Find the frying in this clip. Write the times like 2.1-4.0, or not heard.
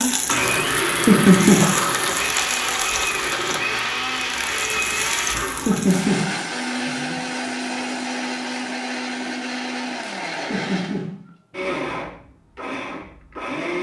0.0-6.1.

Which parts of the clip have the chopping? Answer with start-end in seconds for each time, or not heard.
not heard.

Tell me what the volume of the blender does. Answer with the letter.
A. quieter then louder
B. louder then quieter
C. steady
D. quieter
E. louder
D.